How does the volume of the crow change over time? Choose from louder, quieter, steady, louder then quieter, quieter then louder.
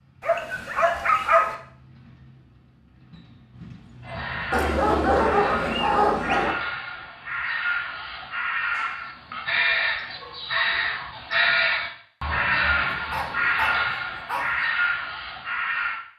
louder.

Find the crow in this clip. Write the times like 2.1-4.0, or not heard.
4.0-16.0.